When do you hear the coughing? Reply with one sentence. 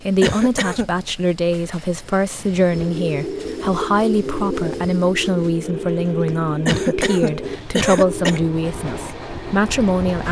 You can hear the coughing from 0.2 to 0.9 s and from 6.7 to 8.4 s.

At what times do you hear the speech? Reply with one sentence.
You can hear the speech from 0.0 to 10.2 s.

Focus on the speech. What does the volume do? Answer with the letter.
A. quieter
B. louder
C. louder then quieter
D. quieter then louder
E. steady
E.